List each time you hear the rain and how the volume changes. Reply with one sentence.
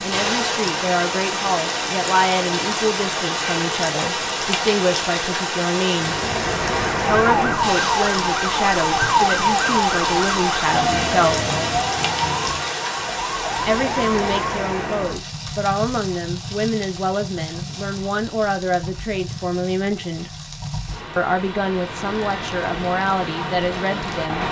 You can hear the rain from 0.0 to 24.4 s, getting quieter.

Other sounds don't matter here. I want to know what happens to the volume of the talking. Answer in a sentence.
The volume of the talking stays about the same.